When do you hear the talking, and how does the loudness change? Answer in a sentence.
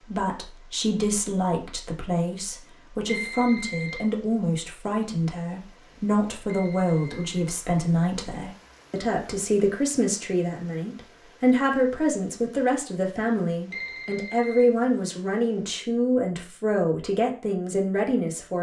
You can hear the talking from 0.1 to 18.5 s, at a steady volume.